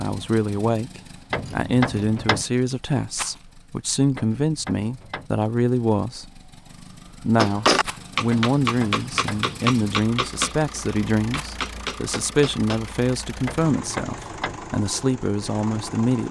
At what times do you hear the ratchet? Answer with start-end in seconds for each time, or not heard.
1.3-2.5, 4.2-5.3, 8.3-9.4, 13.4-14.6.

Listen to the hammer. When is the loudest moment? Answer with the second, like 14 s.
8 s.